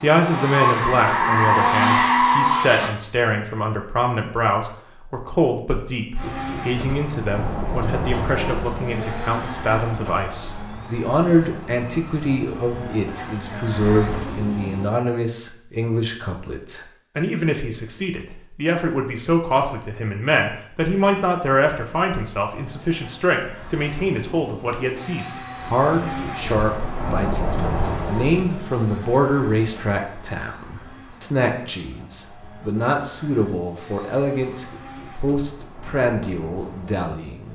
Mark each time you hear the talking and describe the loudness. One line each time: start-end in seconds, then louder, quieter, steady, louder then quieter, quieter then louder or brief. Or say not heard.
0.0-37.5 steady.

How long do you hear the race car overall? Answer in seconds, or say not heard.
28 s.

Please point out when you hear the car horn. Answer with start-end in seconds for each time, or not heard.
not heard.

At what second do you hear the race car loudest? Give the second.
2 s.